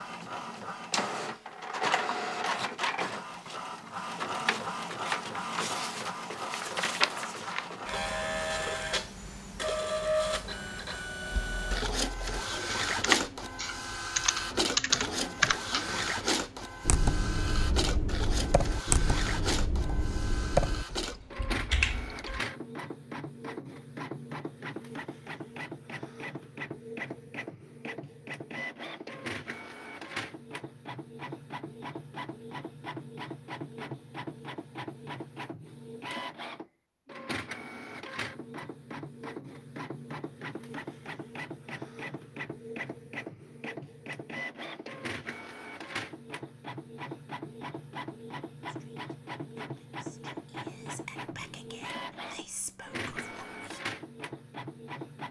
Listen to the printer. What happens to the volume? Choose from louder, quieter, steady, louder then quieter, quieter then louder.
quieter.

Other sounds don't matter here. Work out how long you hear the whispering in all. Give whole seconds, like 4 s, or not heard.
5 s.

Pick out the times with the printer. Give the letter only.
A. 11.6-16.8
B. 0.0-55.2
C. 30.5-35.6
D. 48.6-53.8
B.